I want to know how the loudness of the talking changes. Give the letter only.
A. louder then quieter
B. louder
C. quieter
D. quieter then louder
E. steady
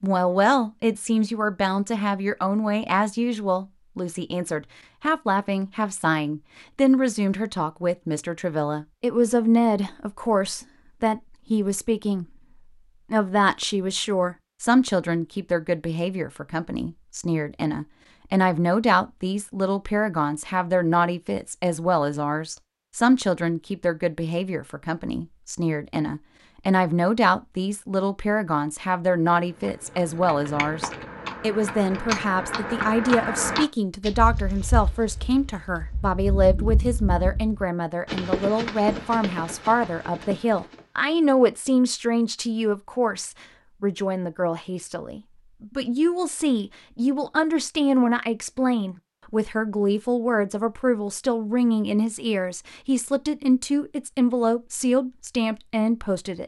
E.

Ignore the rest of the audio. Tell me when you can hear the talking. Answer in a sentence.
You can hear the talking from 0.0 to 12.2 s and from 13.1 to 56.4 s.